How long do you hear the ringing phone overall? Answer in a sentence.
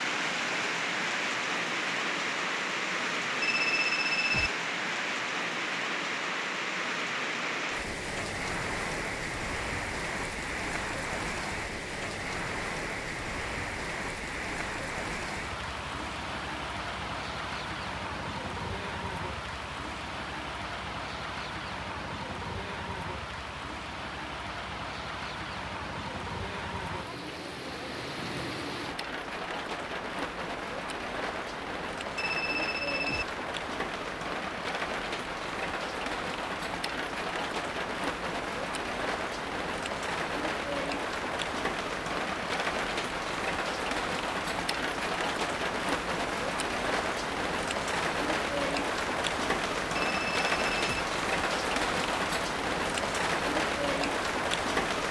The ringing phone can be heard for 3 seconds in total.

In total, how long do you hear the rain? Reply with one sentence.
You can hear the rain for 55 seconds altogether.